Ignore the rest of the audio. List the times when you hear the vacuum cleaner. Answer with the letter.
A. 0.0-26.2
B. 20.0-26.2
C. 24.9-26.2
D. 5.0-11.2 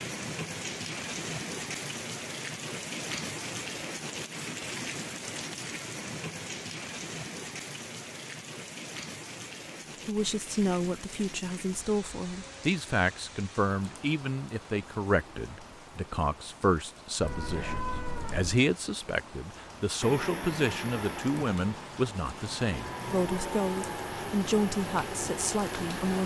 B.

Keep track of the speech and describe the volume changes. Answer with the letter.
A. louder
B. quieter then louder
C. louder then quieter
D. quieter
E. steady
E.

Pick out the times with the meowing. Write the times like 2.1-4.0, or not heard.
17.2-18.6.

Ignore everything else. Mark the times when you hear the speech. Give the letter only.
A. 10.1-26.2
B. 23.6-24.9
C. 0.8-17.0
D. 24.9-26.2
A.